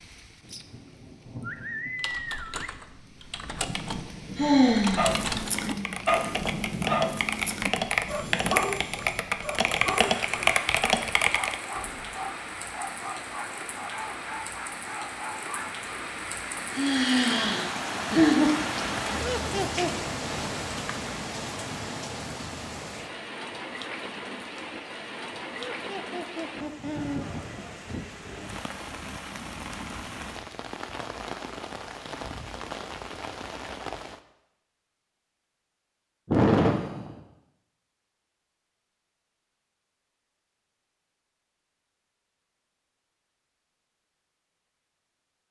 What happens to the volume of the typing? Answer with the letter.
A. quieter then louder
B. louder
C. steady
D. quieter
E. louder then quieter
B.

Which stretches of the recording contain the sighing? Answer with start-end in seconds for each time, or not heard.
4.3-6.0, 16.7-18.5, 36.2-37.2.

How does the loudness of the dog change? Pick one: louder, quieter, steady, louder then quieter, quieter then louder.
quieter.